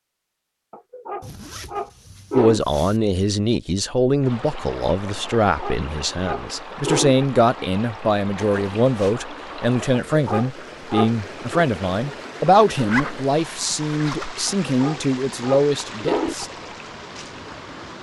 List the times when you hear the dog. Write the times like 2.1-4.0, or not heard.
0.7-2.6, 5.2-7.2, 10.1-11.7, 14.4-16.4.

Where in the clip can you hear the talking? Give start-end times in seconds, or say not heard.
2.4-16.5.